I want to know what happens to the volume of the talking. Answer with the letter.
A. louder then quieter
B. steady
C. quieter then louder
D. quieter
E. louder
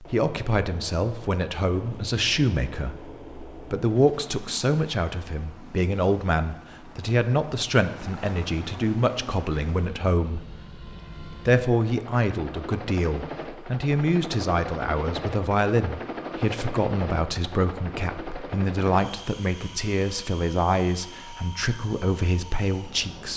B.